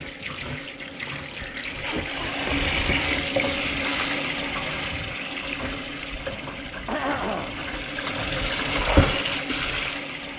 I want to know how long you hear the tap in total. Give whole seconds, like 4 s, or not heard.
10 s.